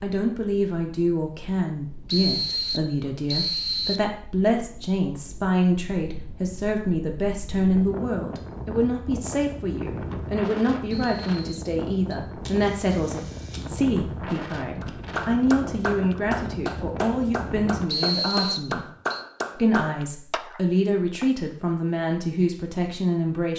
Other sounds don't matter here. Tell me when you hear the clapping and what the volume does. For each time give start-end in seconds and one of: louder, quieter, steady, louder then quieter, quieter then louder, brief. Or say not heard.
14.8-21.3 steady.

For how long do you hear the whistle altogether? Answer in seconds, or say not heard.
5 s.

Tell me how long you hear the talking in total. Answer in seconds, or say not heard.
23 s.